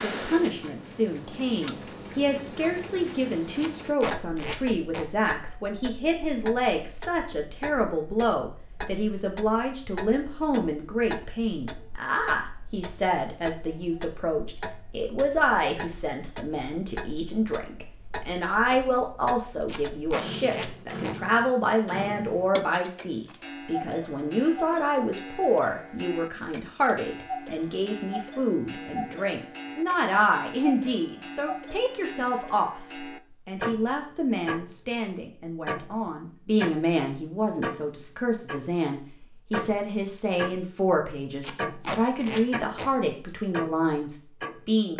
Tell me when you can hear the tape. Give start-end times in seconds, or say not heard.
3.5-5.0, 19.6-21.1, 41.4-42.9.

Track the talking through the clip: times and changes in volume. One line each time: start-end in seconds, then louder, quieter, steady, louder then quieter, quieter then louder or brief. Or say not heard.
0.0-44.9 steady.